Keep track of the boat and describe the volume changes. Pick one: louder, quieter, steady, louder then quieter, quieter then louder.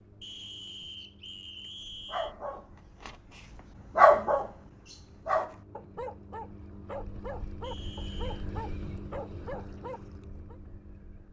louder.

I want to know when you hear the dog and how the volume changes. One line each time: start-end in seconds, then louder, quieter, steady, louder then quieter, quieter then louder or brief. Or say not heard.
2.0-10.6 louder then quieter.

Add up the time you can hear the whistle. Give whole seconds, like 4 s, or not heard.
3 s.